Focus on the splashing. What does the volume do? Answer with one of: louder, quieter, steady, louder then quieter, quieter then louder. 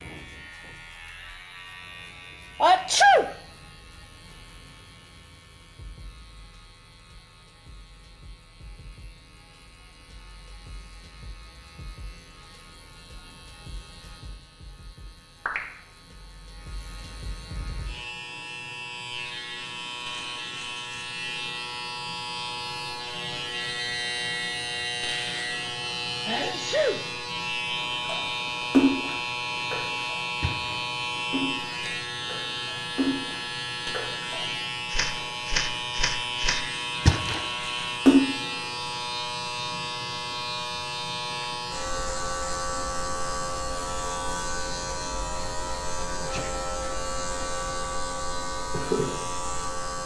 quieter then louder.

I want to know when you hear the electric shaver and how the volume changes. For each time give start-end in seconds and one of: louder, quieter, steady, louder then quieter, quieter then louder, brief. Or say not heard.
0.0-50.0 louder.